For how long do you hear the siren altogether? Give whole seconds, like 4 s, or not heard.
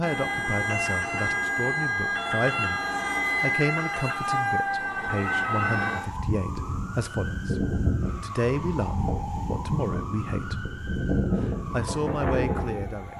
13 s.